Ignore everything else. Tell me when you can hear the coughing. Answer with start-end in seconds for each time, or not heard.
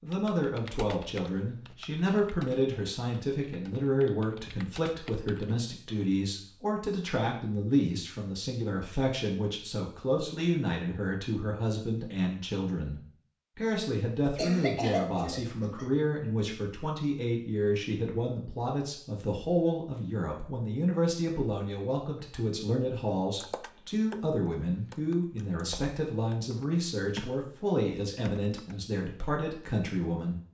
14.2-15.9.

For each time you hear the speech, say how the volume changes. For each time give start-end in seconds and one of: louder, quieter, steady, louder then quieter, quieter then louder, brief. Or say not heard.
0.0-30.4 steady.